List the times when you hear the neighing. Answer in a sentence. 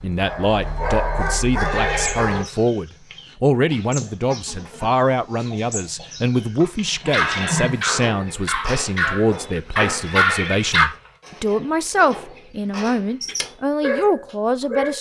You can hear the neighing from 1.6 to 2.7 s, from 6.6 to 7.8 s and from 10.1 to 11.2 s.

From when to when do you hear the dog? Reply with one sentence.
The dog can be heard from 0.0 to 2.5 s, from 7.1 to 10.9 s and from 13.2 to 14.9 s.